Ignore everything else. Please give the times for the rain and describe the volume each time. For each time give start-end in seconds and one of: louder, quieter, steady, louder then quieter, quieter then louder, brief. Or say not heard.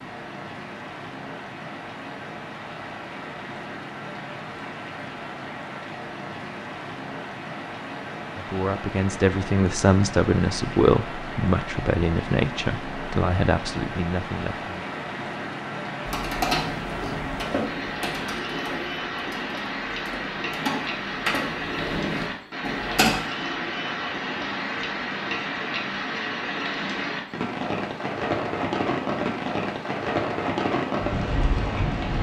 0.0-32.1 louder.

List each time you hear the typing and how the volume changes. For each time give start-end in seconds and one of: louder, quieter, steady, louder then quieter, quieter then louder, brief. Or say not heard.
16.1-23.2 quieter then louder.